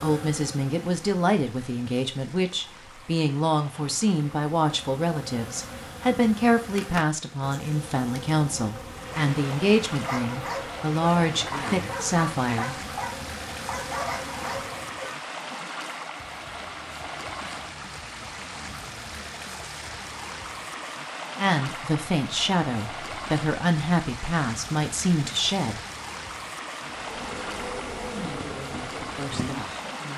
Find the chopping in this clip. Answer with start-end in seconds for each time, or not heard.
not heard.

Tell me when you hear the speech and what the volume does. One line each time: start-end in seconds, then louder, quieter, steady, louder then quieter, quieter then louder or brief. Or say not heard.
0.0-12.8 steady
21.4-25.8 steady
28.1-30.1 brief.